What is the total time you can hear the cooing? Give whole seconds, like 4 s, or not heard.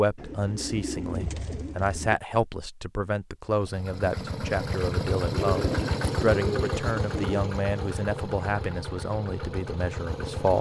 4 s.